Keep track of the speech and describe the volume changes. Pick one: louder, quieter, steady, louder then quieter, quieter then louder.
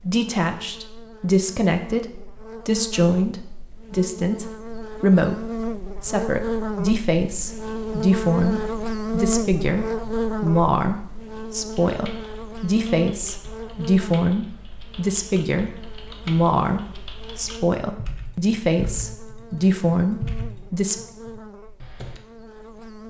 steady.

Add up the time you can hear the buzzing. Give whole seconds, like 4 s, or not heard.
23 s.